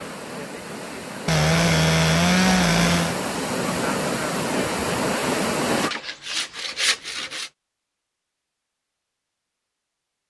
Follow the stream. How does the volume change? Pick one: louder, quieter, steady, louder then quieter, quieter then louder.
louder.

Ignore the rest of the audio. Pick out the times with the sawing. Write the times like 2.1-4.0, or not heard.
1.2-3.1, 5.7-7.5.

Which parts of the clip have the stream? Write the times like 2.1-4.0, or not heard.
0.0-5.9.